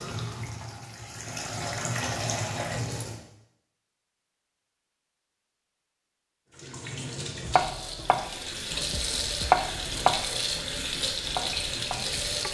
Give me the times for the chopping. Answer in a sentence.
The chopping can be heard from 7.5 to 12.4 s.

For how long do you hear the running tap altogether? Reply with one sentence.
You can hear the running tap for 9 seconds altogether.